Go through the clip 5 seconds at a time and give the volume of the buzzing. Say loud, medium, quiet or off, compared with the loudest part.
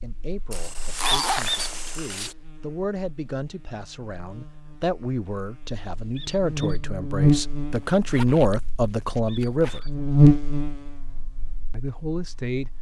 quiet, medium, loud.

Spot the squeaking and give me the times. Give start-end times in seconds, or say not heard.
1.2-1.7, 6.2-6.8, 9.2-9.9.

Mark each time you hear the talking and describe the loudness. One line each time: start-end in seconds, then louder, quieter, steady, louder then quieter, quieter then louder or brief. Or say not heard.
0.0-9.8 louder
11.7-12.7 brief.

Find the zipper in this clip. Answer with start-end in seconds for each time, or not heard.
0.5-2.4, 7.8-9.8.